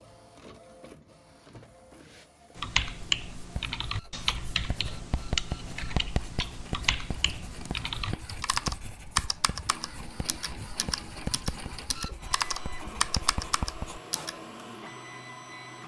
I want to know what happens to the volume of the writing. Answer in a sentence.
The volume of the writing stays about the same.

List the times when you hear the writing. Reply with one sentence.
You can hear the writing from 3.4 to 14.3 s.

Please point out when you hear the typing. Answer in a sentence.
The typing can be heard from 2.5 to 14.3 s.